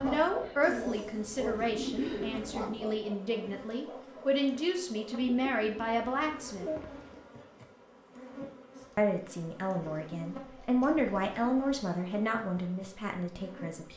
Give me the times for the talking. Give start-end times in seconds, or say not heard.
0.0-6.7, 8.9-13.9.